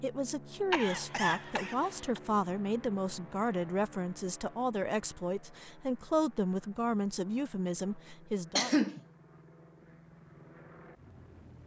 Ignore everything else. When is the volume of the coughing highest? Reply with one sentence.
The loudest moment of the coughing is at 9 seconds.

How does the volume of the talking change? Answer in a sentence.
The loudness of the talking stays about the same.